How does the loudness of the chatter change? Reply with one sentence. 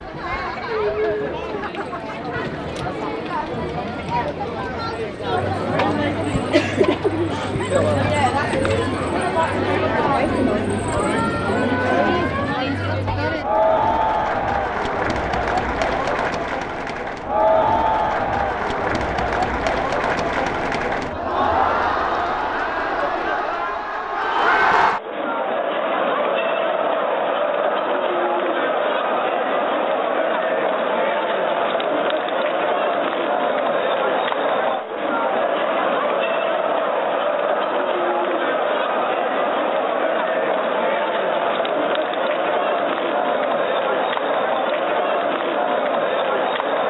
The volume of the chatter stays about the same.